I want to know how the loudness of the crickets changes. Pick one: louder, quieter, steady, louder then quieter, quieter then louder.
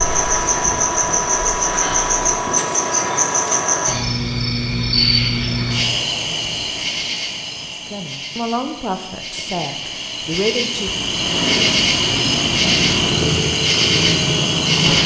quieter then louder.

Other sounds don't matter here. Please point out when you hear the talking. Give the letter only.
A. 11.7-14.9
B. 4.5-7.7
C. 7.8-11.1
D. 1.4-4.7
C.